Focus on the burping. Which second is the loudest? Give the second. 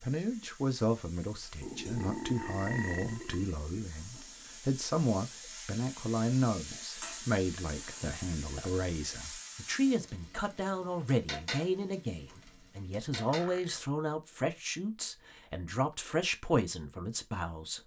3 s.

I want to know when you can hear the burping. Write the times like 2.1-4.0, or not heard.
1.6-3.5, 7.5-8.7, 13.2-13.9.